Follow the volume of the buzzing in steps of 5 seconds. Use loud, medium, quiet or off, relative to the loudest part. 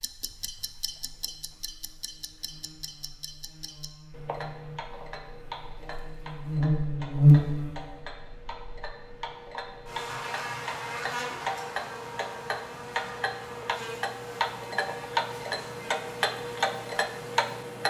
quiet, loud, quiet, quiet.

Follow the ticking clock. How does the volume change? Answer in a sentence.
The loudness of the ticking clock goes up.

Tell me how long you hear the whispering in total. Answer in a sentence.
The whispering can't be heard in this clip.